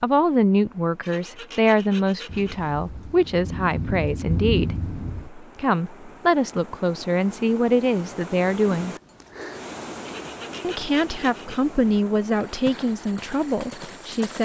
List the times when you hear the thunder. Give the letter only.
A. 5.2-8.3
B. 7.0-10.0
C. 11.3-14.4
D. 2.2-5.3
D.